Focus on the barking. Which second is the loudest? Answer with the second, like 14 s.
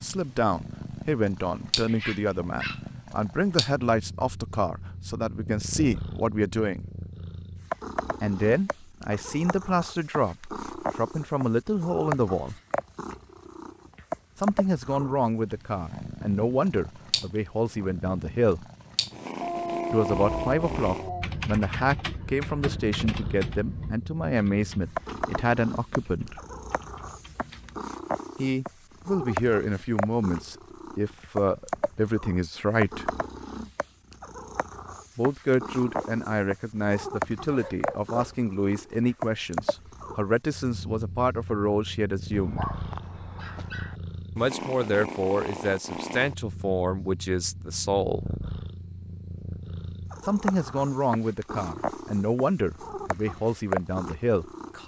20 s.